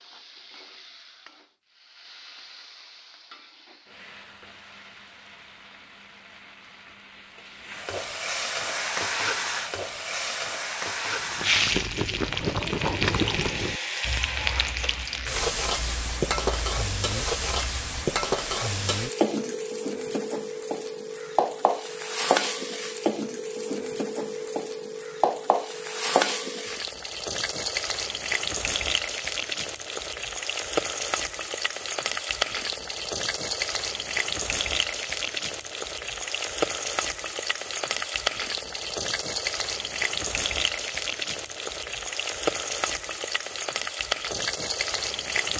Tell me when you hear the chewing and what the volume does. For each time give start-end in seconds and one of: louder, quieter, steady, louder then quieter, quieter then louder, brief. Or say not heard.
11.2-18.1 quieter.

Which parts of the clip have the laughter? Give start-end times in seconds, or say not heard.
not heard.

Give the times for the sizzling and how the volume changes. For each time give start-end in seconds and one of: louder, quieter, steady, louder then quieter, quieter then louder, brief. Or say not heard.
0.0-45.5 louder.